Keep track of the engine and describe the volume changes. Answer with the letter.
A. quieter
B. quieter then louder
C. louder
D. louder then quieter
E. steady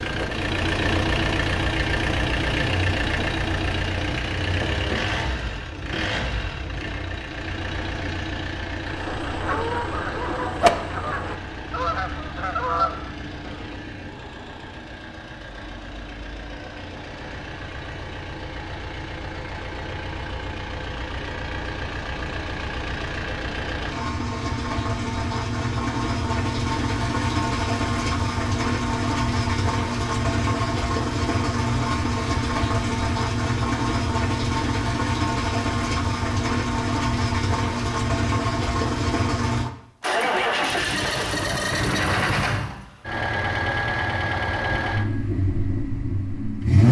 B.